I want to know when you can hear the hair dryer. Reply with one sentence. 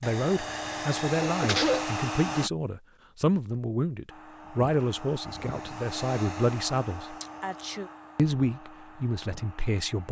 The hair dryer can be heard from 0.0 to 2.5 s and from 4.0 to 10.0 s.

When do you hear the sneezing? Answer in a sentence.
The sneezing can be heard from 1.4 to 2.5 s and from 7.2 to 7.9 s.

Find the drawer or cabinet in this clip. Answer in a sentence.
You can't hear the drawer or cabinet here.